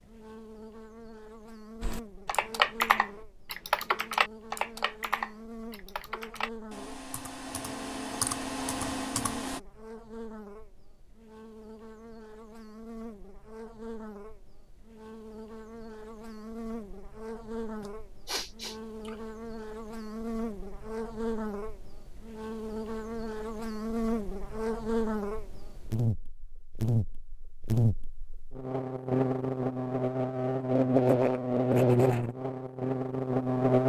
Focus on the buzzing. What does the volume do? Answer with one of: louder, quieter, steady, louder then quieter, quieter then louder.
louder.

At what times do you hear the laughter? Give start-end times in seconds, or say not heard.
not heard.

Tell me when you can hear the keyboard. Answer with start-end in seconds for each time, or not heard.
1.8-9.6.